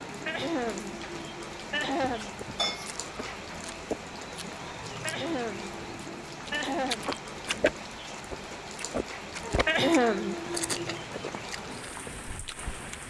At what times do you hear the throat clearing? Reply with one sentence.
The throat clearing can be heard from 0.1 to 2.4 s, from 4.8 to 7.1 s and from 9.4 to 11.0 s.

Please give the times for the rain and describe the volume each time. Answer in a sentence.
You can hear the rain from 0.0 to 13.0 s, at a steady volume.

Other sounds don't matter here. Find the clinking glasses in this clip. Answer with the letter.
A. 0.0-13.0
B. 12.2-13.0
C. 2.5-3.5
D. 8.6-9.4
C.